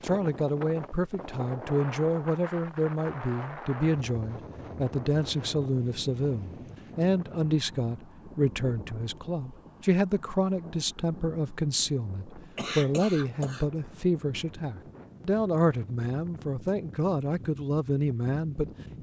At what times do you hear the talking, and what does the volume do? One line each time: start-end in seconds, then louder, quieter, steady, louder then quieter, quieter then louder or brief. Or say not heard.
0.0-18.7 steady.